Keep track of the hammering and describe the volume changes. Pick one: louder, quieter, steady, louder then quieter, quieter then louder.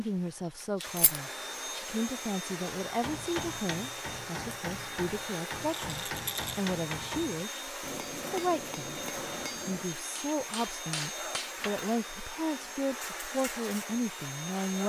steady.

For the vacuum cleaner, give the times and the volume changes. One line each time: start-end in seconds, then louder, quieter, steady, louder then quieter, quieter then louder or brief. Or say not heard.
0.0-14.8 steady.